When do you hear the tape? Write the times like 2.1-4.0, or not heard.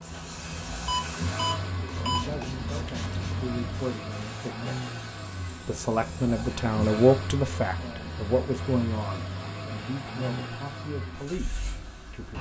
not heard.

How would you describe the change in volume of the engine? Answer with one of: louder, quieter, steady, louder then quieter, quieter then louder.
steady.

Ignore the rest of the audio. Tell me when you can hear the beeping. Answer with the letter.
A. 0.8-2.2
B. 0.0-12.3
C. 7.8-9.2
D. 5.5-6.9
A.